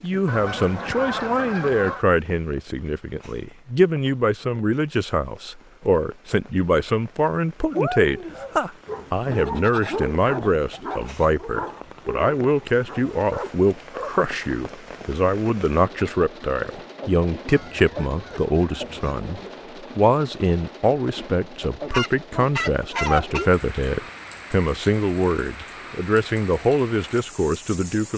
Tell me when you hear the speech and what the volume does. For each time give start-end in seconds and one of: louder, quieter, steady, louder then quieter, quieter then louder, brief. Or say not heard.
0.0-28.1 steady.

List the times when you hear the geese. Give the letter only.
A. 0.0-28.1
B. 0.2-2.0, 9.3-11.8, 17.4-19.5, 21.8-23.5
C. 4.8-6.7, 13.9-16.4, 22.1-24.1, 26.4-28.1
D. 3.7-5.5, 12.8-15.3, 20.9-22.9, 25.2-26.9
B.